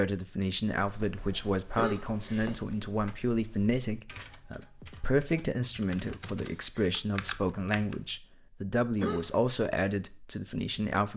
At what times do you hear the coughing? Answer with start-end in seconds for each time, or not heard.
1.8-2.6, 8.9-9.5.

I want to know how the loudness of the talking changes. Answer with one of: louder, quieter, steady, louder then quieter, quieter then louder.
steady.